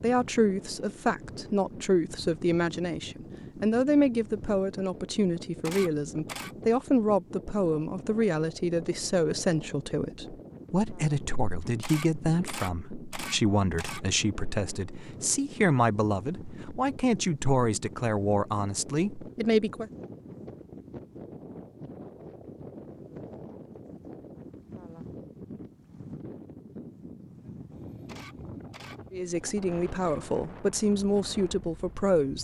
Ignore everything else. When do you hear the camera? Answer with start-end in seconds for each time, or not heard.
5.6-6.5, 11.8-14.0, 28.1-29.0.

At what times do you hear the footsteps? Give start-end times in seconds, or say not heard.
not heard.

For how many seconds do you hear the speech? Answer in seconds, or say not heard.
23 s.